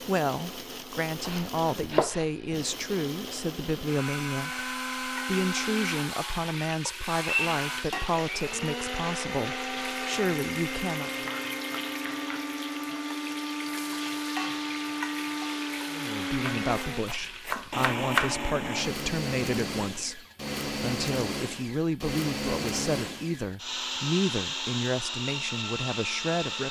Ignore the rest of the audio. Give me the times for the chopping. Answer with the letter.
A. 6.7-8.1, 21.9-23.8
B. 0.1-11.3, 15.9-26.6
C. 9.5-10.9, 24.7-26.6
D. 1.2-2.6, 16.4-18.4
D.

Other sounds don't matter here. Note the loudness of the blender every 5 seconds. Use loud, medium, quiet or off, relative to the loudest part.
medium, loud, loud, loud, loud, loud.